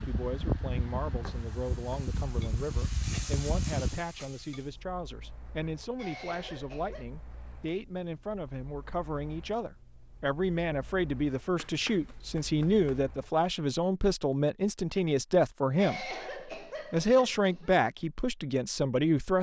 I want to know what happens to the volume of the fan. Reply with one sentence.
The volume of the fan goes down.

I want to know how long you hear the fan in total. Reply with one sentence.
You can hear the fan for 13 seconds altogether.